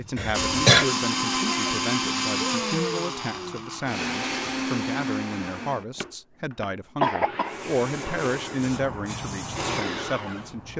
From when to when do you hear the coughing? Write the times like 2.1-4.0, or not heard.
0.1-0.8, 7.0-7.7.